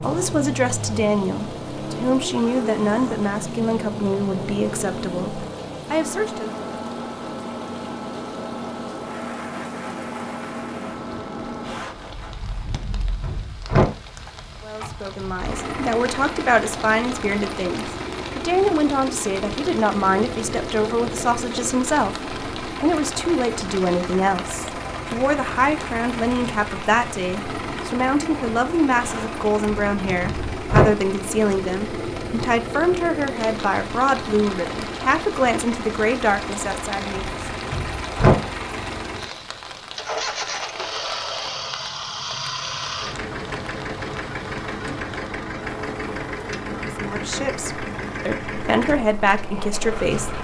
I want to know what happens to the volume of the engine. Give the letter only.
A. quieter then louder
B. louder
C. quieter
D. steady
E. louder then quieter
D.